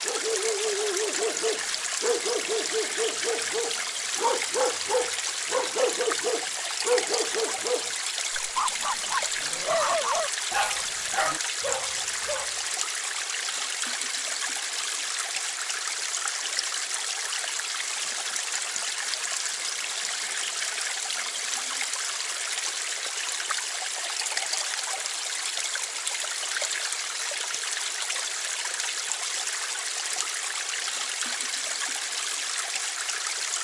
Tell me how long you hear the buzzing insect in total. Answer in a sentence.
You can't hear the buzzing insect here.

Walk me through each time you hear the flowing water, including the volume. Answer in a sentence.
The flowing water can be heard from 0.0 to 33.5 s, at a steady volume.